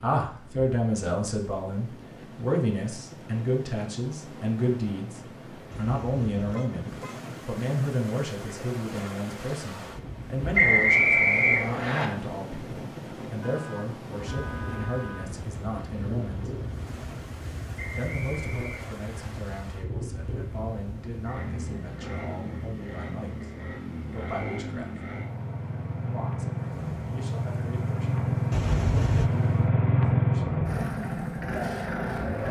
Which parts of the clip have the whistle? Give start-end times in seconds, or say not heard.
10.6-12.1, 17.8-19.3.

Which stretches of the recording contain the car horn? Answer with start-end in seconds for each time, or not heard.
5.7-7.2, 13.4-15.4, 28.5-29.3.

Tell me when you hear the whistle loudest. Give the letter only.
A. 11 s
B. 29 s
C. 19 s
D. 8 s
A.